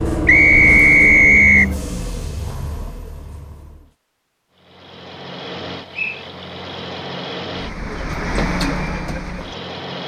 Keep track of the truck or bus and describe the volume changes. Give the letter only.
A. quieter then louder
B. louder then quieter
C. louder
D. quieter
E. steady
A.